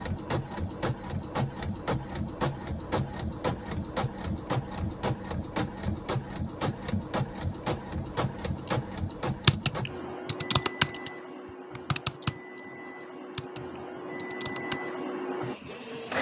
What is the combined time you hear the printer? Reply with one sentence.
The printer can be heard for 16 seconds in total.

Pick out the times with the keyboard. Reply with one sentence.
The keyboard can be heard from 8.4 to 11.1 s and from 11.8 to 14.8 s.